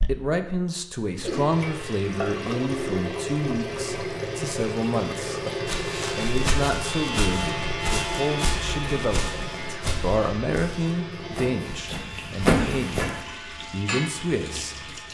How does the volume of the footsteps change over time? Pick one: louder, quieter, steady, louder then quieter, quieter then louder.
quieter then louder.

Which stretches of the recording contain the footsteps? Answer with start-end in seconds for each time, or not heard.
5.7-13.2.